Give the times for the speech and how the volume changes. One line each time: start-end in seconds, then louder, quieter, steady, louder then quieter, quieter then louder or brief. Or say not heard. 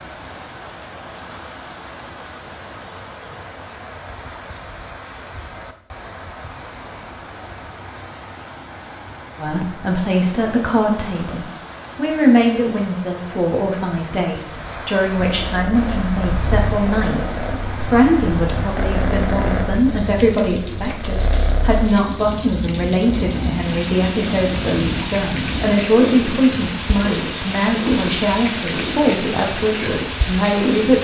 9.3-31.0 steady.